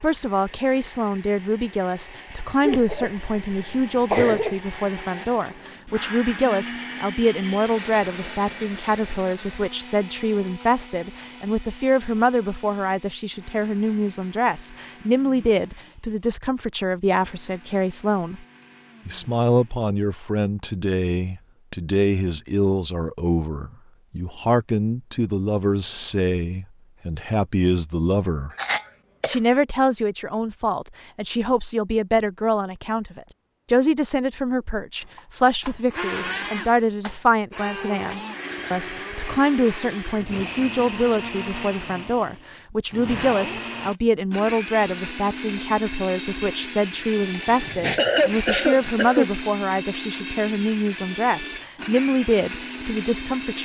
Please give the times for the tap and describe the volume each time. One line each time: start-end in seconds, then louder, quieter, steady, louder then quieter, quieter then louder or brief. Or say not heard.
not heard.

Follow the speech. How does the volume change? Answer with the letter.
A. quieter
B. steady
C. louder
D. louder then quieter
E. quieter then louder
B.